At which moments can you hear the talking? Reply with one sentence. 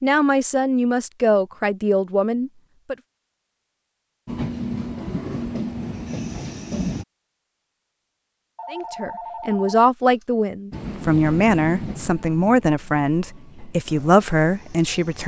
You can hear the talking from 0.0 to 3.0 s and from 8.7 to 15.2 s.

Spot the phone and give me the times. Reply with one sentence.
You can hear the phone from 8.6 to 10.2 s.